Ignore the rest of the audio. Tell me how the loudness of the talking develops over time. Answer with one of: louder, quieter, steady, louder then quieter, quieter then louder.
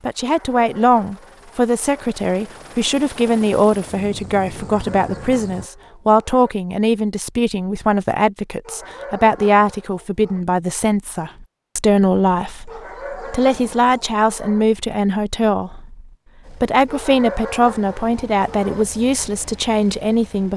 steady.